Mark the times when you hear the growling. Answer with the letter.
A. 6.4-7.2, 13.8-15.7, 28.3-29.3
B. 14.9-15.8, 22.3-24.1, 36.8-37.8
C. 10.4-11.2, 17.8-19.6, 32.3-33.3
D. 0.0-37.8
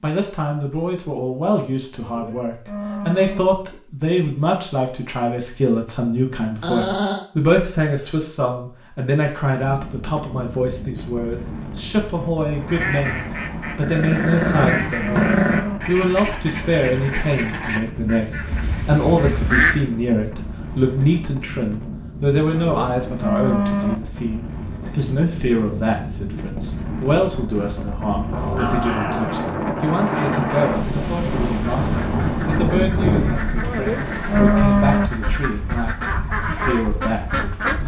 A.